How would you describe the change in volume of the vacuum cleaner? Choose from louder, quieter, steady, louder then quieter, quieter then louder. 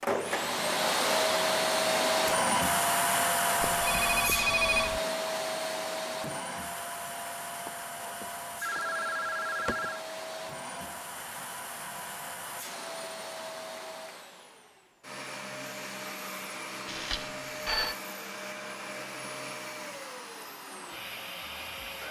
quieter.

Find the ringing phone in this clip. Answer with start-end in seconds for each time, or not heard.
3.6-5.0, 7.7-10.0, 16.9-17.9.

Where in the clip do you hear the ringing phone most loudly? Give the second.
5 s.